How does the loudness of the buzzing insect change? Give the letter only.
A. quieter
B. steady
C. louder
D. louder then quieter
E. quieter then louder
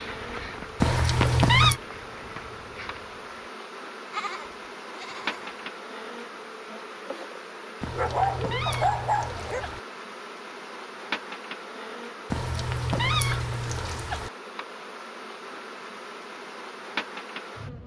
B.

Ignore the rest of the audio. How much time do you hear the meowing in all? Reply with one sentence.
The meowing can be heard for 5 seconds in total.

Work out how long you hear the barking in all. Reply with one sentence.
You can hear the barking for 2 seconds altogether.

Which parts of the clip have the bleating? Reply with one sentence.
The bleating can be heard from 4.1 to 5.7 s.